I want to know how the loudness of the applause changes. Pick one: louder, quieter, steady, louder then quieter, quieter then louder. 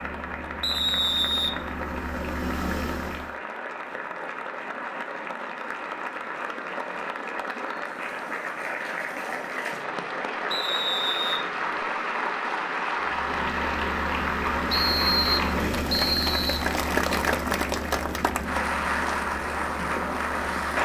louder.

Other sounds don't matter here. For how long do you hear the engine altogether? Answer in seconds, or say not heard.
11 s.